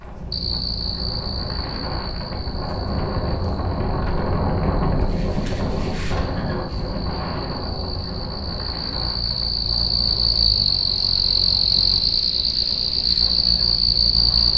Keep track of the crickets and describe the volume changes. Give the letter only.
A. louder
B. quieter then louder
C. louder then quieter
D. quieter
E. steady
B.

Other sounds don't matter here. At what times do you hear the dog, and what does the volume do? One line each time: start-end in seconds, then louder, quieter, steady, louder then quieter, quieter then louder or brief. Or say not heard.
not heard.